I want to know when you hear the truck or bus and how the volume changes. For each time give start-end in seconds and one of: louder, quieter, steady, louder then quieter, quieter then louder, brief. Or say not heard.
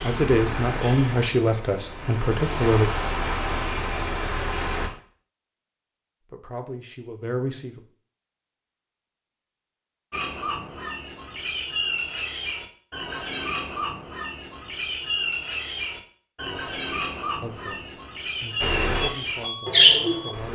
0.0-4.9 quieter then louder
18.6-20.5 brief.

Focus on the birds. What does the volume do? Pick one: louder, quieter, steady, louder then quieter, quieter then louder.
louder.